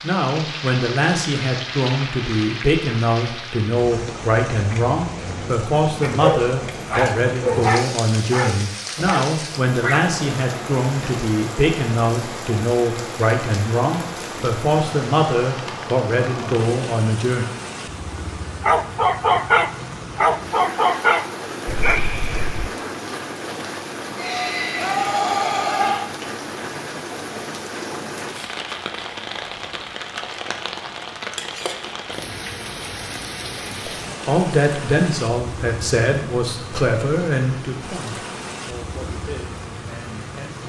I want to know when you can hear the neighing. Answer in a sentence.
The neighing can be heard from 24.1 to 26.1 s.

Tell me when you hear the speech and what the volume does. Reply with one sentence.
You can hear the speech from 0.0 to 17.4 s, at a steady volume; and from 33.9 to 40.6 s, getting quieter.